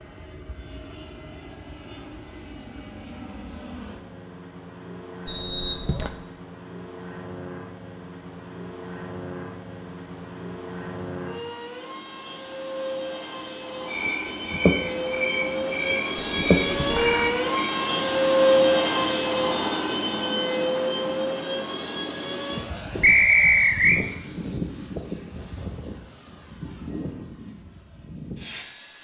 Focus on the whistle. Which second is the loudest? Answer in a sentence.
The volume of the whistle peaks at 23 seconds.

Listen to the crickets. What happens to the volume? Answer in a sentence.
The loudness of the crickets goes up.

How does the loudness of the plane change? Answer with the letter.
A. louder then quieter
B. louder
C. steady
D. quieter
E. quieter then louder
A.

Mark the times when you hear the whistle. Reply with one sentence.
You can hear the whistle from 5.2 to 6.1 s, from 16.2 to 17.3 s and from 23.0 to 24.1 s.